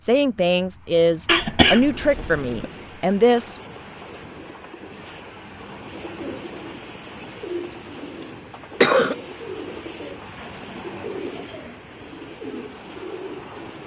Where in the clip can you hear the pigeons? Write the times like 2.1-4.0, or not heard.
5.8-13.8.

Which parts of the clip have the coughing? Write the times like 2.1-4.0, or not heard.
1.2-2.6, 8.2-9.2.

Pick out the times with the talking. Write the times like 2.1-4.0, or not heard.
0.0-3.6.